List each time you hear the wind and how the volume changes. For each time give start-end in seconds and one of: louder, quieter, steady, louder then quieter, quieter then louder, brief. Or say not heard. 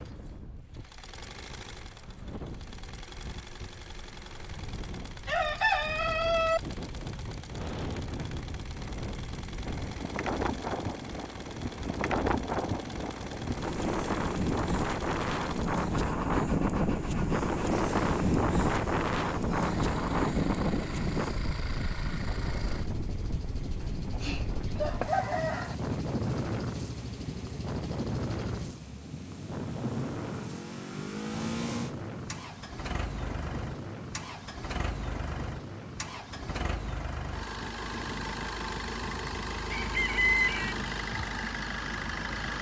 0.0-42.5 louder then quieter.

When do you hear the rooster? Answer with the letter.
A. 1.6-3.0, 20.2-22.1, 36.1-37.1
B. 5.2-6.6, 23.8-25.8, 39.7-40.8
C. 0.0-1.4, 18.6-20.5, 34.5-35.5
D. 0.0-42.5
B.